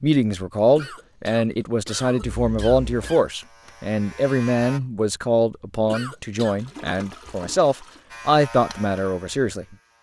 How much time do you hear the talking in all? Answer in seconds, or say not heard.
10 s.